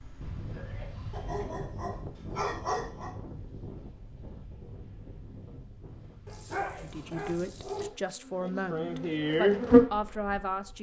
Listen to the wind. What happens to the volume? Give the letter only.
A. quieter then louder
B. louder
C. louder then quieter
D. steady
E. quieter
E.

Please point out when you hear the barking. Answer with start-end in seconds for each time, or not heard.
1.1-3.1, 6.2-7.9.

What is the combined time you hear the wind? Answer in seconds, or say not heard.
8 s.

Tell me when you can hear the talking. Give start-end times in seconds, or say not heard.
6.6-10.7.